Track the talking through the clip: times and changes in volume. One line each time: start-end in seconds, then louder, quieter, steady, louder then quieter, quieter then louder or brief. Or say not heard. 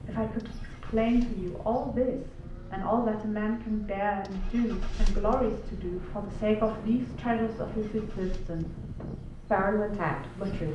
0.0-8.9 steady
9.5-10.7 brief.